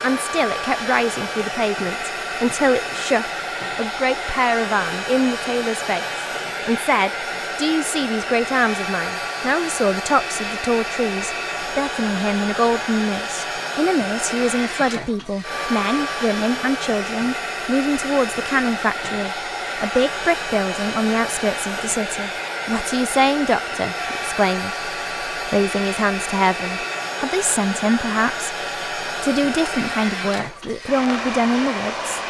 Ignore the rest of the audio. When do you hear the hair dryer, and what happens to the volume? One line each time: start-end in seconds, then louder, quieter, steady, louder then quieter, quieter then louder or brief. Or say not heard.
0.0-32.2 steady.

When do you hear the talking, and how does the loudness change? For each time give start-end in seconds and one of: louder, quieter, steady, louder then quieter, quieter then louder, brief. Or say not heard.
0.0-32.2 steady.